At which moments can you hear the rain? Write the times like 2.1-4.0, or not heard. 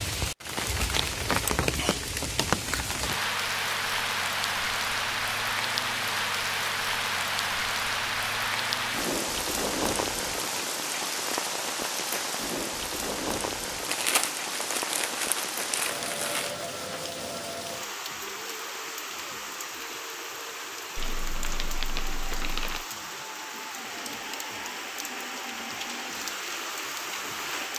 0.0-27.7.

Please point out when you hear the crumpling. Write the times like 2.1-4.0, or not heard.
0.6-1.2, 13.8-16.6, 20.9-22.9.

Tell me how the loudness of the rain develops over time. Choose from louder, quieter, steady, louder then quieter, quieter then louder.
quieter.